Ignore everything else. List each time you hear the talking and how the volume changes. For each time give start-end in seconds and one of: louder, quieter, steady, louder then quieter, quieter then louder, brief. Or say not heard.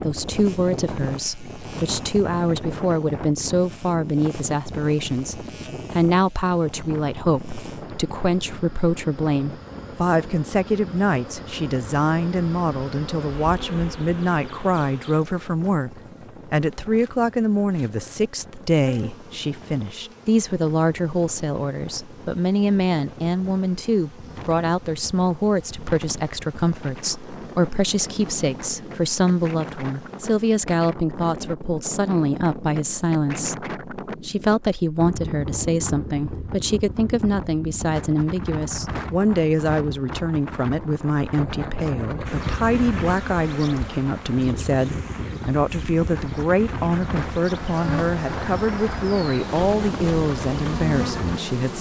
0.0-51.7 steady.